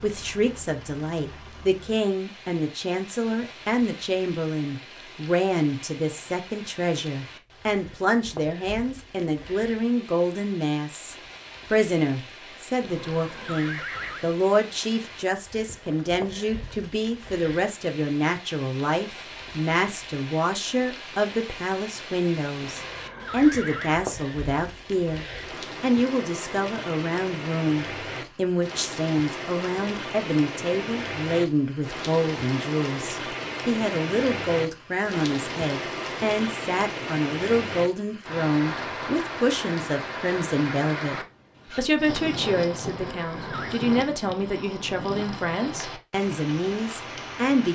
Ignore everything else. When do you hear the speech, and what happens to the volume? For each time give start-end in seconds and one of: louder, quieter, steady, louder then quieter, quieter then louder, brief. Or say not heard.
0.0-47.7 steady.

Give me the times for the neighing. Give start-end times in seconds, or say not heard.
12.8-14.2, 22.6-24.1, 42.9-43.8.